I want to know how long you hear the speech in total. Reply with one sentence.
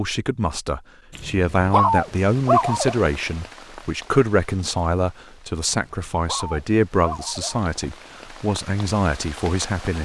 You can hear the speech for 10 seconds altogether.